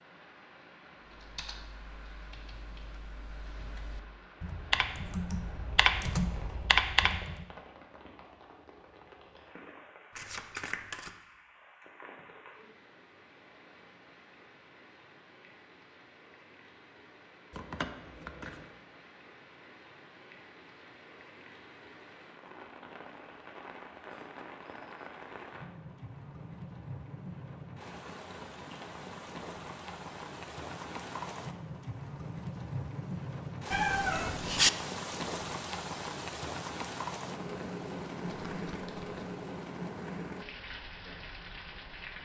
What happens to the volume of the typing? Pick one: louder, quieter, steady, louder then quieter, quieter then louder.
louder.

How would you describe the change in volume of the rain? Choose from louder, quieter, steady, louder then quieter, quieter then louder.
louder.